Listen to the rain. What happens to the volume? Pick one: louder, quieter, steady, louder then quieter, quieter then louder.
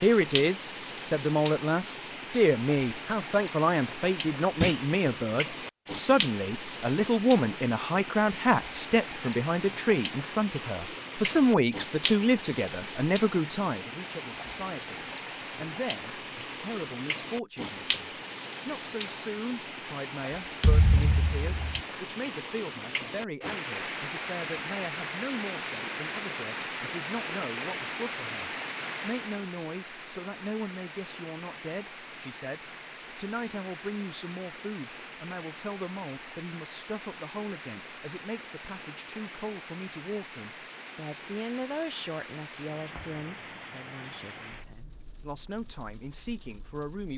quieter.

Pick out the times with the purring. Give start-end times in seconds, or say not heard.
not heard.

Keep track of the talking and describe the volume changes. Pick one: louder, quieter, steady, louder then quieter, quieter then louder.
quieter.